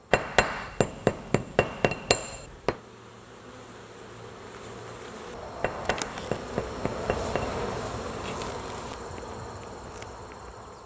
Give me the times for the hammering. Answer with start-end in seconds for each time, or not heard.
0.1-2.8, 5.6-7.5.